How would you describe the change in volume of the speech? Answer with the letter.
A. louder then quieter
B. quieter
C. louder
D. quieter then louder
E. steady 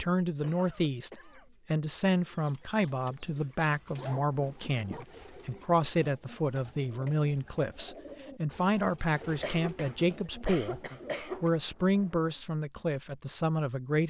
E.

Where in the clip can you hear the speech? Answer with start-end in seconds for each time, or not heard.
0.0-14.0.